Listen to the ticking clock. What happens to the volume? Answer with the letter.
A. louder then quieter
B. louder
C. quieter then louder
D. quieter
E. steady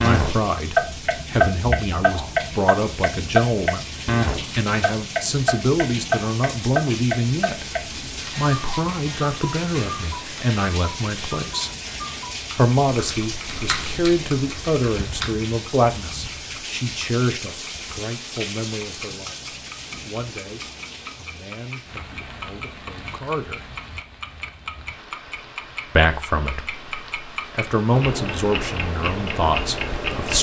C.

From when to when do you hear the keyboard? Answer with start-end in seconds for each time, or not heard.
12.9-15.3.